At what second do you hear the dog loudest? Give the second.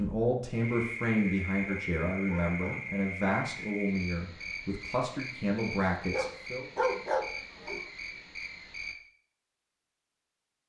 7 s.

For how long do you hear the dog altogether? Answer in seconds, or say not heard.
3 s.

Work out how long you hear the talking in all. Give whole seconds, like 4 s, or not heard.
7 s.